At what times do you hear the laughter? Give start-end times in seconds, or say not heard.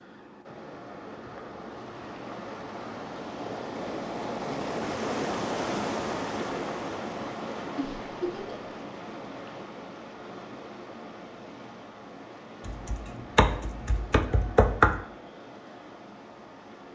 7.8-8.7.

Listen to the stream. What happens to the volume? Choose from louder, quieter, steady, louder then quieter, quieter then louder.
louder then quieter.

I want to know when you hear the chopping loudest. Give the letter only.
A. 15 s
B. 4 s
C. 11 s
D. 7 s
A.